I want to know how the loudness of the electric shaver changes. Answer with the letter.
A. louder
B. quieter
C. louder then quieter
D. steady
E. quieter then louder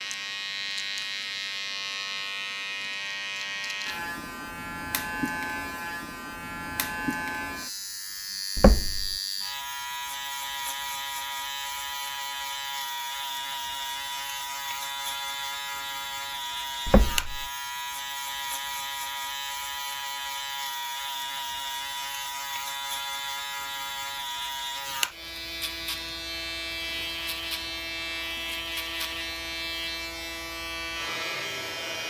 D.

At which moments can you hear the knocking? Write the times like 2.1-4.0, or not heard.
8.6-9.2, 16.9-17.4.